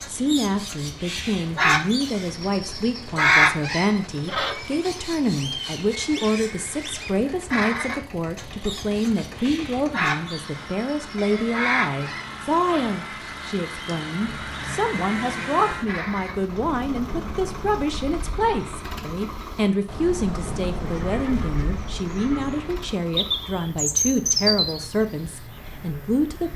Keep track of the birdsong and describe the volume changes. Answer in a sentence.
The loudness of the birdsong goes down, then up.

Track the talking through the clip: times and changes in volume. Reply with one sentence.
You can hear the talking from 0.1 to 26.5 s, at a steady volume.